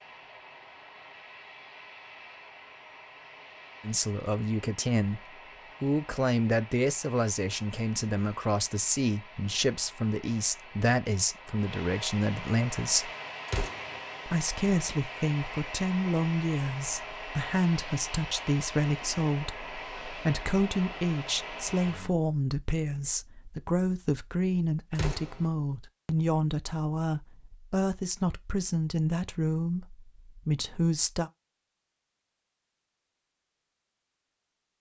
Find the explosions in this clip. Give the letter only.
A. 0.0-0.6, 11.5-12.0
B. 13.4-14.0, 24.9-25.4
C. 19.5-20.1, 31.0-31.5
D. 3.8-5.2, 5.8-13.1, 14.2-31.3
B.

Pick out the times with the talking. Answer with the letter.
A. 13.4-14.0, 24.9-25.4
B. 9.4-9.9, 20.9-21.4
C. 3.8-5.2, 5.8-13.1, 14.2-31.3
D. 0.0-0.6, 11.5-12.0
C.